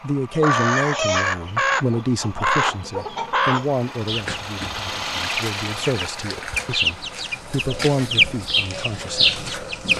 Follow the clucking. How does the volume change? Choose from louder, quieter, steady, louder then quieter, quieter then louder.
quieter then louder.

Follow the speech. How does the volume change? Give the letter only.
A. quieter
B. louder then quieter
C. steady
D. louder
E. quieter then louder
E.